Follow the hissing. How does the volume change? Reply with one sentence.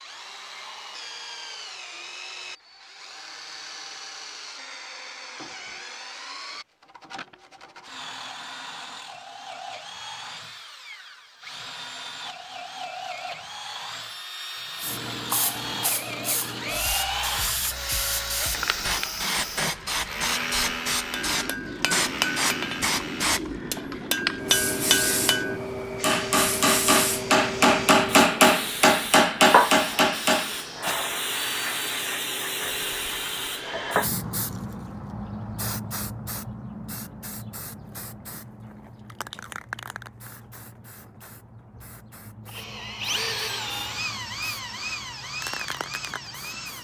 The loudness of the hissing goes down.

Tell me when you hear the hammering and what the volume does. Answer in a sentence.
You can hear the hammering from 21.1 to 30.9 s, getting louder.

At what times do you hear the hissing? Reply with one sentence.
The hissing can be heard from 14.8 to 46.7 s.